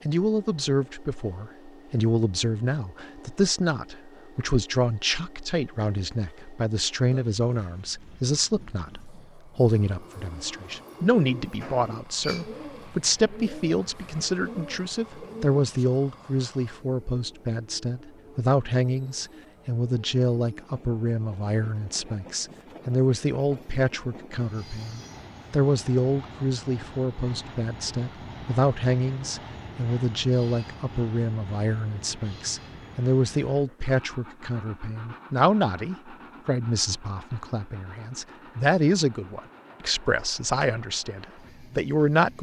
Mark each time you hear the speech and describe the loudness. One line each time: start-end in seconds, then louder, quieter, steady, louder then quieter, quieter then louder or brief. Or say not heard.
0.0-42.3 steady.